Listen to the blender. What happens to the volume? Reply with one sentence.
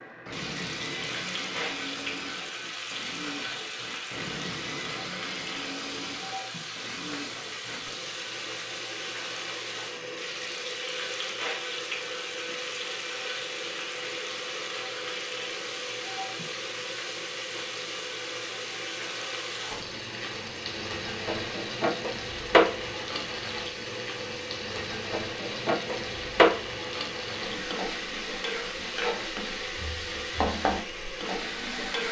The volume of the blender stays about the same.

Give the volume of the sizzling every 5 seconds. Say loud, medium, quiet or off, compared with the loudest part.
medium, medium, medium, medium, loud, loud, loud.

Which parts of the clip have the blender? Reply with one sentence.
You can hear the blender from 0.1 to 32.0 s.